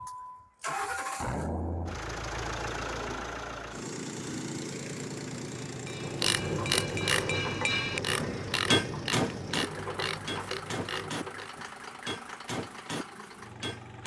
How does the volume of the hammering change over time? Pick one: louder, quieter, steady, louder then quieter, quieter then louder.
louder then quieter.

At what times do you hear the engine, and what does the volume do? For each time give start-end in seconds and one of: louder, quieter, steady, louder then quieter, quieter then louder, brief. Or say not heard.
0.0-14.0 quieter.